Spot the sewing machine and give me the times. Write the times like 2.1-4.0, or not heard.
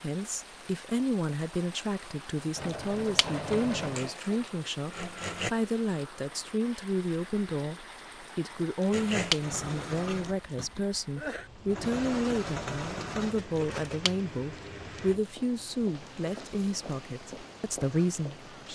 2.5-5.5, 8.9-15.2.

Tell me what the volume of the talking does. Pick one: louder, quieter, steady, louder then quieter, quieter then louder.
steady.